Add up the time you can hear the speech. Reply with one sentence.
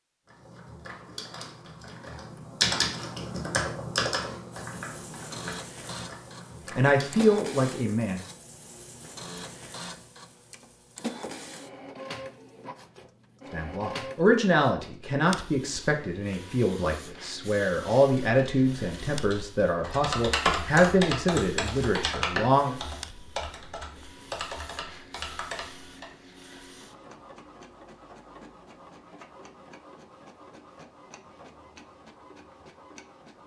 The speech can be heard for 11 seconds in total.